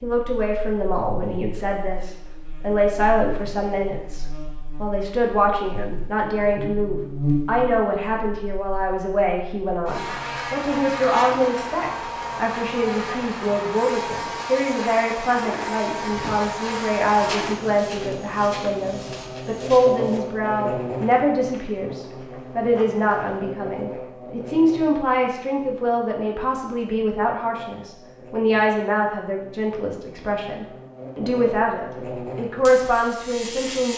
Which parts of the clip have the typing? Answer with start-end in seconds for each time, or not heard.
not heard.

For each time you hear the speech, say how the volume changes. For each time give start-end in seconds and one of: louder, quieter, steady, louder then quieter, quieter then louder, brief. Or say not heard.
0.0-33.9 steady.